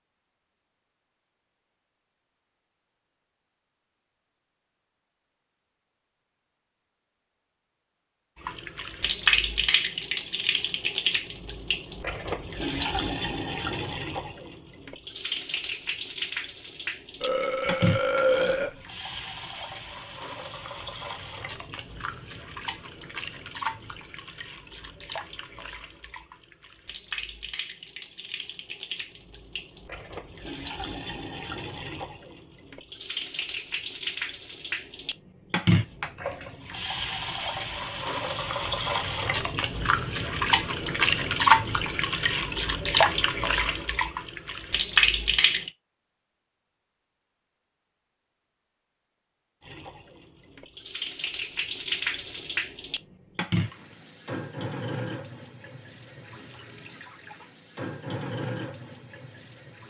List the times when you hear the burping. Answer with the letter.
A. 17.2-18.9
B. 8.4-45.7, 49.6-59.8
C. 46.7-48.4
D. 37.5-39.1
A.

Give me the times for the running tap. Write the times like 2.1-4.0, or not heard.
8.4-45.7, 49.6-59.8.